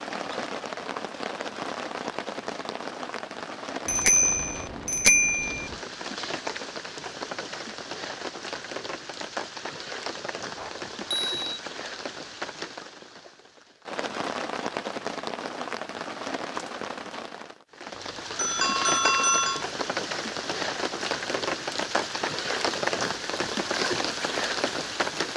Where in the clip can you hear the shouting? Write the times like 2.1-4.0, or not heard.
not heard.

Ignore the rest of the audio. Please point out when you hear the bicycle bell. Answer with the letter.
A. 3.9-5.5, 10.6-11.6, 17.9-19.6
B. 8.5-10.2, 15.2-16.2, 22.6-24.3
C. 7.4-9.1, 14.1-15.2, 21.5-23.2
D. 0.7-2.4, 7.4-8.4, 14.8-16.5
A.